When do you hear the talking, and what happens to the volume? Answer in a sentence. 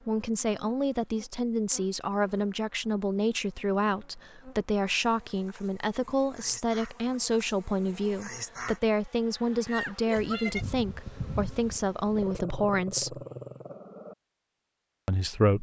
The talking can be heard from 0.1 to 13.2 s, at a steady volume; and briefly from 15.1 to 15.5 s.